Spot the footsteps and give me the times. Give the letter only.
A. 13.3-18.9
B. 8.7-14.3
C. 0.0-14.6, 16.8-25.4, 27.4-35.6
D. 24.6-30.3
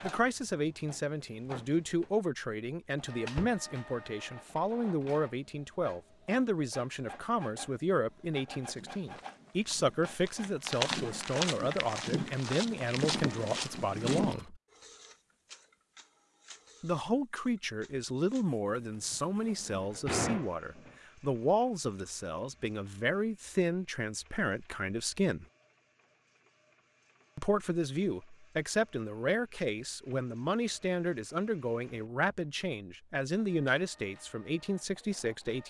B.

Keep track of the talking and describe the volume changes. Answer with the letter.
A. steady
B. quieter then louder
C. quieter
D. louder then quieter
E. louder
A.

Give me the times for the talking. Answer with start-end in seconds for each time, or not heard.
0.0-14.6, 16.8-25.4, 27.4-35.6.